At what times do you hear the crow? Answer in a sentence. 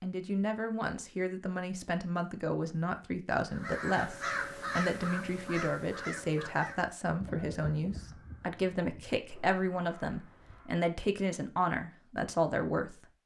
The crow can be heard from 3.5 to 10.8 s.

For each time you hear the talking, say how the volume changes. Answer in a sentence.
The talking can be heard from 0.0 to 12.9 s, at a steady volume.